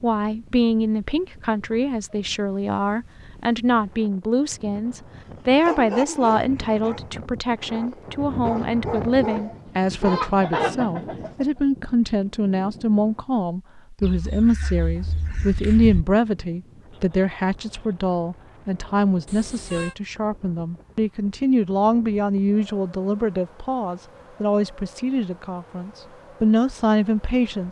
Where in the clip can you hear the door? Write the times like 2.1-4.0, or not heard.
not heard.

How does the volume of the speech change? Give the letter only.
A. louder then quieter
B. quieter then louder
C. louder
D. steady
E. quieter
D.